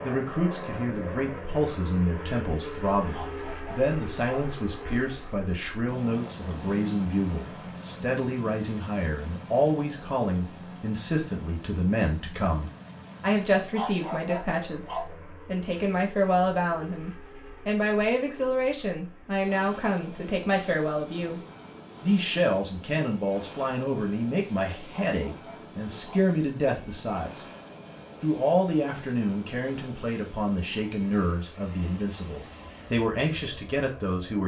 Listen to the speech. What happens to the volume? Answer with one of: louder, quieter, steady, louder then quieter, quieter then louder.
steady.